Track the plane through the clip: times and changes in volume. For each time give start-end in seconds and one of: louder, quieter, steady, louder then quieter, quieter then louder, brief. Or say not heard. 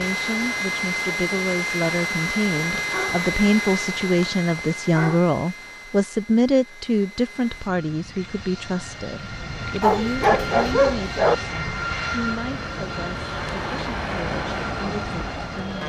0.0-15.8 quieter then louder.